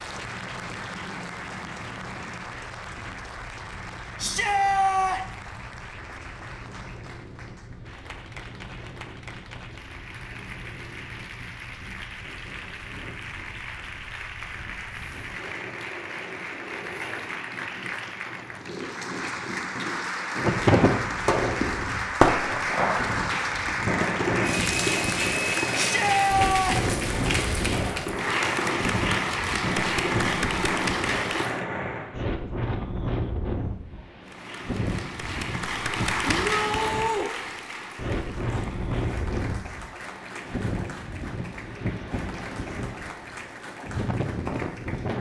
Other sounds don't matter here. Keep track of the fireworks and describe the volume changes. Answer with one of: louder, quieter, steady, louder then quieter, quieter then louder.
quieter.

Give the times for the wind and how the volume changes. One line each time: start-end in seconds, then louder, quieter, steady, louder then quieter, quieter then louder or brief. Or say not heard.
0.0-45.1 louder.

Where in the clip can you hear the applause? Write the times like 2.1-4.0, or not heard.
0.0-31.6, 34.2-45.1.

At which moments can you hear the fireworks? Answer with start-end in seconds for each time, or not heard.
20.4-32.1.